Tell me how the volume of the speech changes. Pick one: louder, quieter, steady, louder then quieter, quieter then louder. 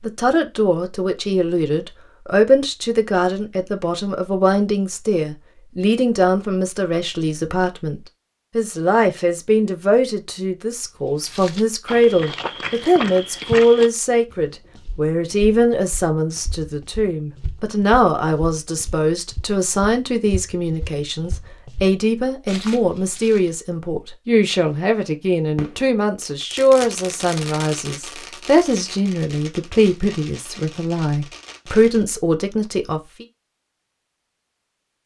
steady.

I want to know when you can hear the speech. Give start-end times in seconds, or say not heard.
0.0-33.2.